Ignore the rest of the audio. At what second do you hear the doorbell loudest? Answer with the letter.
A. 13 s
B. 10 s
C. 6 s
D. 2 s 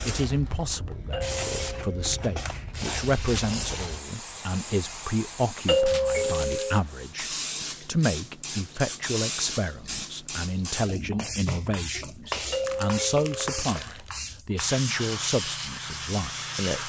C.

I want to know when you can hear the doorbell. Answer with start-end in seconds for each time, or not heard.
1.1-2.2, 5.7-6.8, 12.5-13.7.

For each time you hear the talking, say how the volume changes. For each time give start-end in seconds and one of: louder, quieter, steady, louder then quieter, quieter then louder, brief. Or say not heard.
0.1-16.8 steady.